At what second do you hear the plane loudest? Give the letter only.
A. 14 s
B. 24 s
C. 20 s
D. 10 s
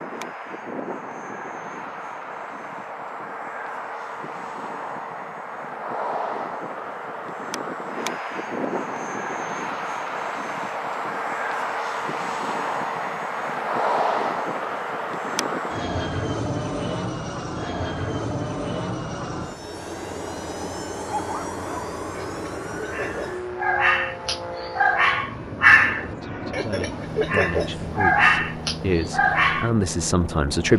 A.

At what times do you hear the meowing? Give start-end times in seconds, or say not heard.
not heard.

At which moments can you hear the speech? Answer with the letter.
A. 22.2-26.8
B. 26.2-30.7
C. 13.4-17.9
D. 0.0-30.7
B.